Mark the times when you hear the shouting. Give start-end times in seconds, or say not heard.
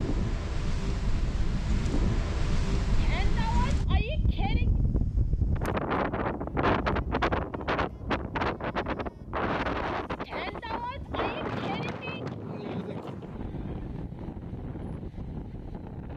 3.0-4.7, 10.2-12.2.